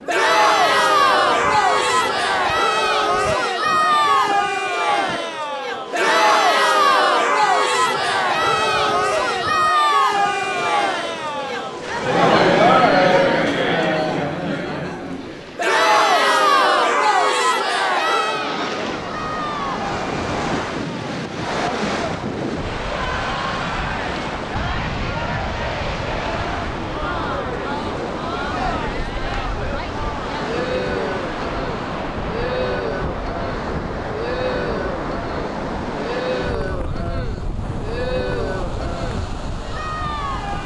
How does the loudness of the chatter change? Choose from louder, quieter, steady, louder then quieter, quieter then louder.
quieter.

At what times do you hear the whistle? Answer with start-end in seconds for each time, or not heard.
not heard.